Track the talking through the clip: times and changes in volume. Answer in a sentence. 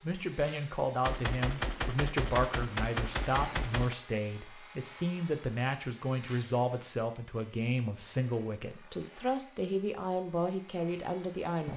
The talking can be heard from 0.0 to 11.7 s, at a steady volume.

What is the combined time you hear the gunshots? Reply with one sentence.
You can hear the gunshots for 3 seconds altogether.